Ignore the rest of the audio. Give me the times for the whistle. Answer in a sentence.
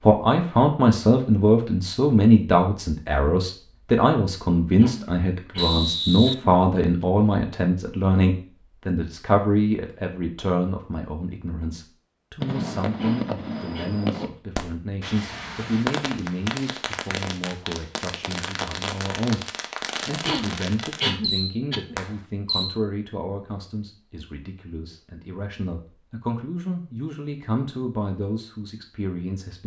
You can hear the whistle from 5.5 to 7.0 s.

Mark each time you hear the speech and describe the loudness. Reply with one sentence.
You can hear the speech from 0.0 to 29.6 s, getting quieter.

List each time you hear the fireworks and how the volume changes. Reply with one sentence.
The fireworks can be heard from 12.4 to 22.8 s, at a steady volume.